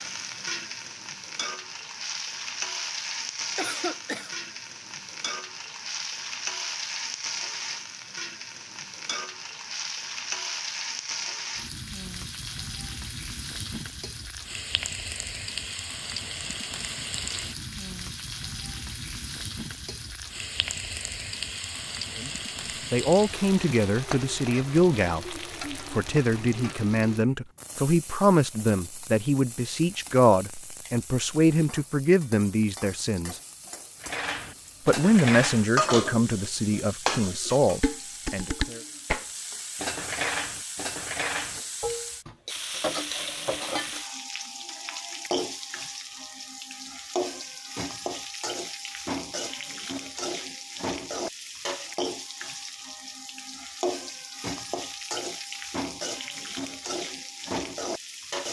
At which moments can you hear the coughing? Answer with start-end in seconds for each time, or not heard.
3.5-4.3.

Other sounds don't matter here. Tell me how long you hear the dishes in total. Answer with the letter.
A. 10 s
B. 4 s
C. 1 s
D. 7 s
A.